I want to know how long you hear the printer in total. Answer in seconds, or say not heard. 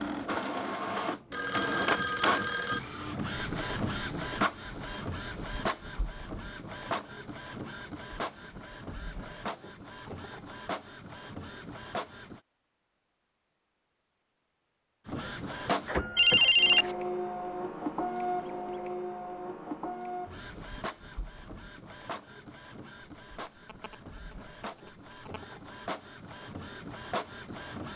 25 s.